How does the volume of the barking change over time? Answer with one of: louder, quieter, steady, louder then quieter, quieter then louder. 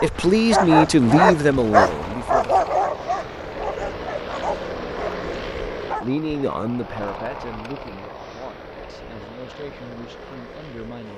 quieter.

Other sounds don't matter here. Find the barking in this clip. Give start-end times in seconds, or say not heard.
0.0-6.0.